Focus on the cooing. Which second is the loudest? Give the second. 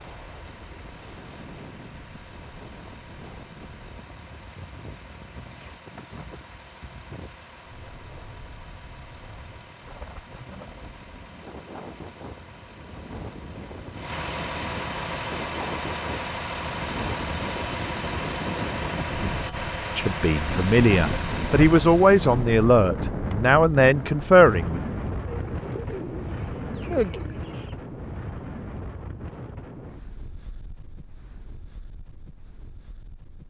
27 s.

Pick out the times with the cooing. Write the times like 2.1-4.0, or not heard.
25.2-27.8.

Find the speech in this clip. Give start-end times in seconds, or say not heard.
19.9-24.8.